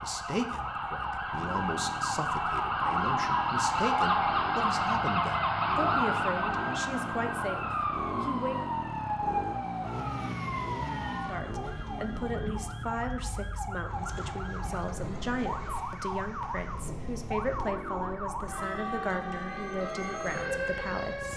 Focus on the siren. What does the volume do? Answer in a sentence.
The loudness of the siren goes down.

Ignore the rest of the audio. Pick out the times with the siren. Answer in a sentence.
The siren can be heard from 0.0 to 21.3 s.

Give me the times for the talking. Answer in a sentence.
The talking can be heard from 0.0 to 8.7 s and from 11.2 to 21.3 s.